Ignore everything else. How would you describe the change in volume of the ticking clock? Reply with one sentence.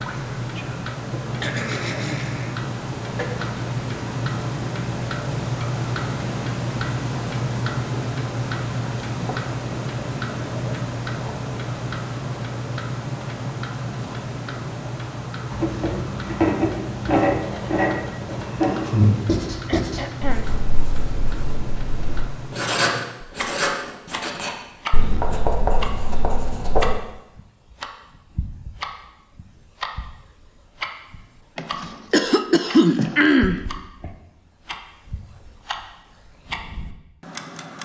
The loudness of the ticking clock goes down.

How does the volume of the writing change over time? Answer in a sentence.
The volume of the writing goes down, then up.